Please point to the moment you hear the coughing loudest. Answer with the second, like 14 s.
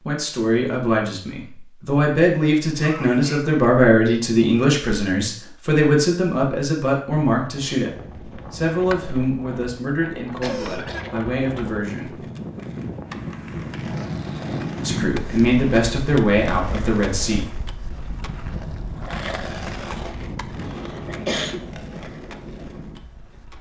21 s.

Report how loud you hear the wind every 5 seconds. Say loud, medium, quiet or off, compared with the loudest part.
off, medium, loud, loud, medium.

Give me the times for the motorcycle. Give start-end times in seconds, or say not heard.
not heard.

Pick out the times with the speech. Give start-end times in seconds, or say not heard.
0.0-12.2, 14.8-17.5.